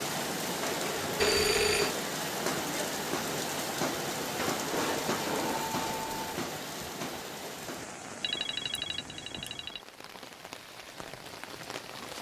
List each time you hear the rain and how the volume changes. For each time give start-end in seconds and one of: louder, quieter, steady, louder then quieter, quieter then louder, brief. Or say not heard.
0.0-12.1 quieter.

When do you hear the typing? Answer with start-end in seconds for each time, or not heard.
not heard.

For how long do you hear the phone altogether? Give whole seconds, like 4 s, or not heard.
4 s.